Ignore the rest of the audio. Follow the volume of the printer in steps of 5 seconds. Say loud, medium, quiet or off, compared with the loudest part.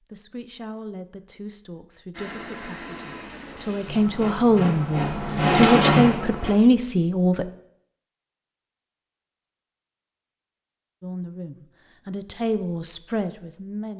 quiet, loud, off.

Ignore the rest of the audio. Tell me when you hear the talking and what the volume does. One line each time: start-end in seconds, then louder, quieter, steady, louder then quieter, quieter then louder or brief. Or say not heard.
0.1-7.5 louder
11.0-13.9 brief.